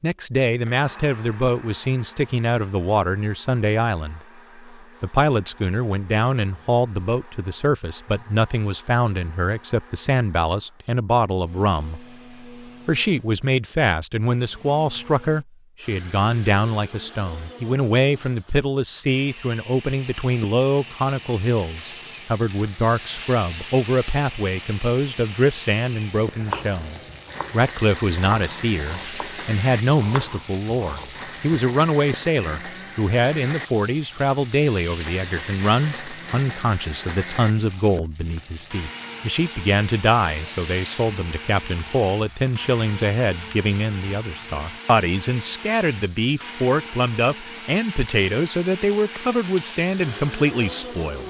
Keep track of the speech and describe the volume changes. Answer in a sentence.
The loudness of the speech stays about the same.